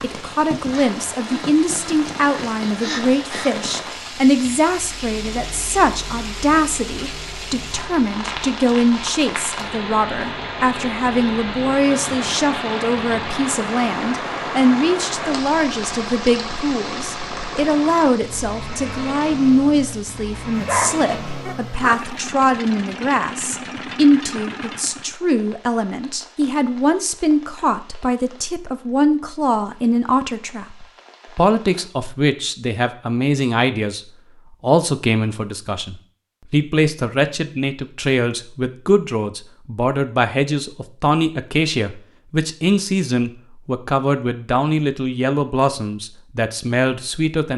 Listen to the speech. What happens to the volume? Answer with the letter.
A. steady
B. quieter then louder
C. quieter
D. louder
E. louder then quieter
A.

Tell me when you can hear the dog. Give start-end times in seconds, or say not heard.
20.6-22.0.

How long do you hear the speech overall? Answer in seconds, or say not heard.
47 s.